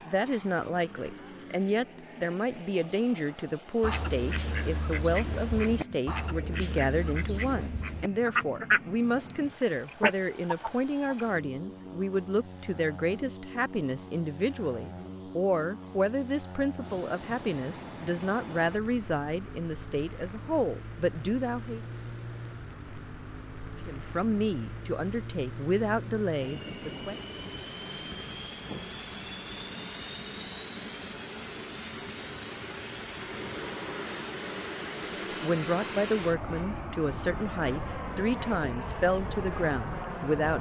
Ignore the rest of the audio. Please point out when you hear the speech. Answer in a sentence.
The speech can be heard from 0.1 to 21.9 s, from 23.9 to 27.2 s and from 35.0 to 40.5 s.